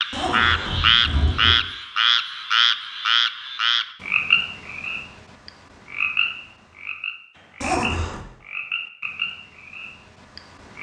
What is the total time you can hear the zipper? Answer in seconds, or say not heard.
2 s.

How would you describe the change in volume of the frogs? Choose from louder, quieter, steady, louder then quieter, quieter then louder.
quieter.